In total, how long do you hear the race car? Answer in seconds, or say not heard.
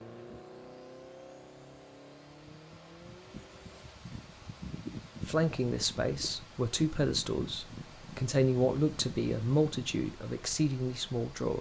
4 s.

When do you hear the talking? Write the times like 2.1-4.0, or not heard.
5.2-11.5.